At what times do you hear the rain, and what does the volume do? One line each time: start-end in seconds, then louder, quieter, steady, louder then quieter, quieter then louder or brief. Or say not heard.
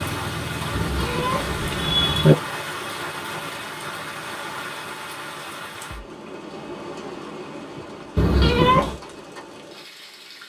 0.0-10.4 quieter.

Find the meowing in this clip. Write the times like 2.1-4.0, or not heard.
0.7-2.4, 8.2-9.0.